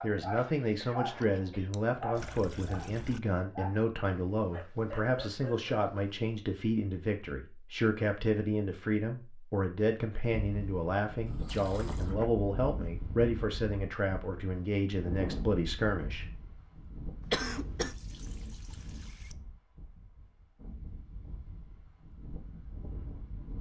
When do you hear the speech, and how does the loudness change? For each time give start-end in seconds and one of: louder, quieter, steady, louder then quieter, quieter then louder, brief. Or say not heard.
0.0-16.2 steady.